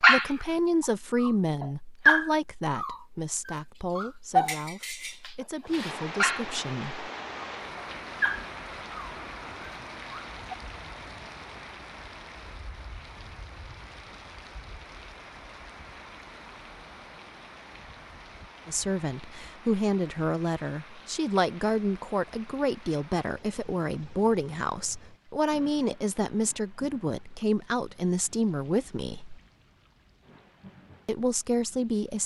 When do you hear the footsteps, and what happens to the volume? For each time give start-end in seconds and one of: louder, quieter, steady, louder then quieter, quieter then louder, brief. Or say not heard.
not heard.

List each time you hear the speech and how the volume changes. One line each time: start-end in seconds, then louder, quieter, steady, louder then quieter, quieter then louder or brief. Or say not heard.
0.0-7.1 quieter then louder
18.6-29.4 steady
31.1-32.2 brief.